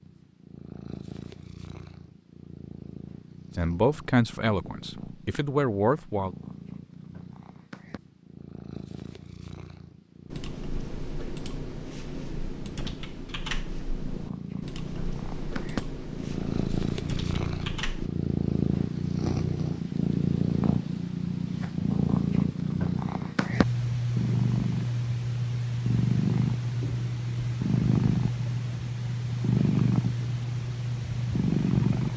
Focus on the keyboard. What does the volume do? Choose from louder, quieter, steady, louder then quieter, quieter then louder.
steady.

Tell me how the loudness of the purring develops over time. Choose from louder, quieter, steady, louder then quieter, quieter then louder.
louder.